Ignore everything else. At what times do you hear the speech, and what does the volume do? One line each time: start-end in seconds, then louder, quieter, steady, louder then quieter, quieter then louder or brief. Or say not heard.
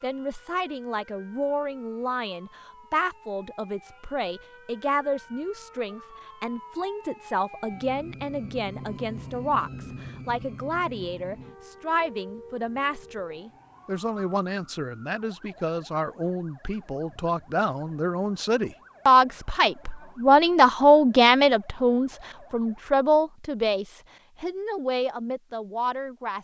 0.0-26.3 louder.